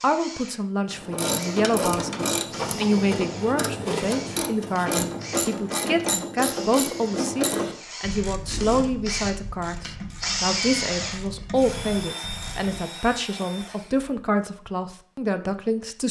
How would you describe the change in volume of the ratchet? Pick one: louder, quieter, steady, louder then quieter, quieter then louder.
quieter.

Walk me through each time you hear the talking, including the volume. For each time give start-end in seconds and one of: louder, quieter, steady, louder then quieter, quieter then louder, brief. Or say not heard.
0.0-16.0 steady.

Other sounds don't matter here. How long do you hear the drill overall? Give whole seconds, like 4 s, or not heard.
14 s.